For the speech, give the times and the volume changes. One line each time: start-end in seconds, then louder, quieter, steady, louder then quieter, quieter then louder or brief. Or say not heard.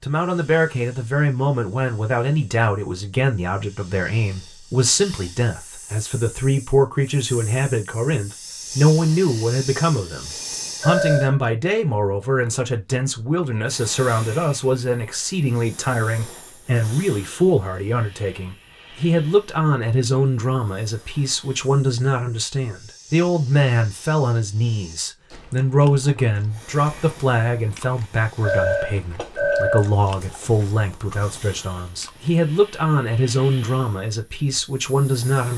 0.0-35.5 steady.